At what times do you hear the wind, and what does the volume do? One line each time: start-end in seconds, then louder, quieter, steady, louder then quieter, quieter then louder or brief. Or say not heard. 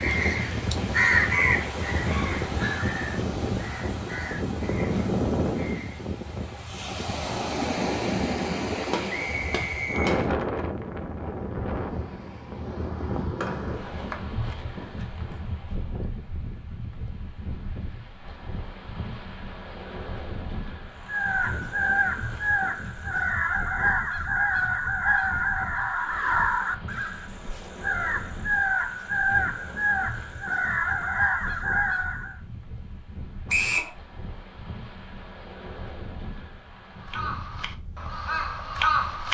0.0-39.2 quieter.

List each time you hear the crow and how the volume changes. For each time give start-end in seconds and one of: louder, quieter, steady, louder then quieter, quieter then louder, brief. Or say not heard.
0.0-6.1 quieter
21.1-32.4 steady
37.0-39.2 brief.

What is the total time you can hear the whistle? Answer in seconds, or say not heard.
2 s.